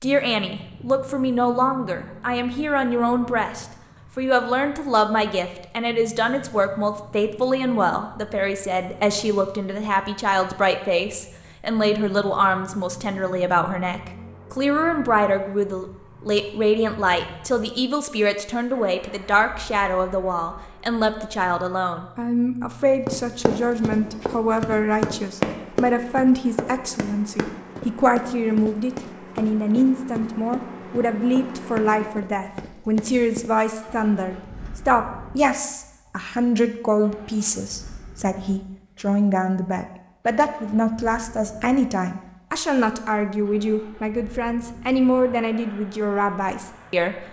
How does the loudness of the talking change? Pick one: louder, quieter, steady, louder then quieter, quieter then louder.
steady.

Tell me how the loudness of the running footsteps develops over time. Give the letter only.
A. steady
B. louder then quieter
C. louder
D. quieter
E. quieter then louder
D.